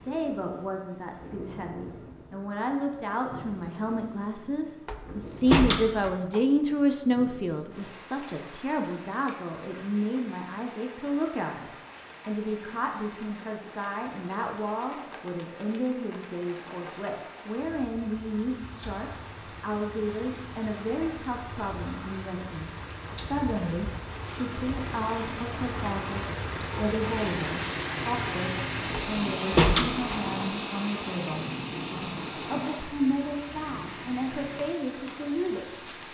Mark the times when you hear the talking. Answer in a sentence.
You can hear the talking from 0.0 to 36.0 s.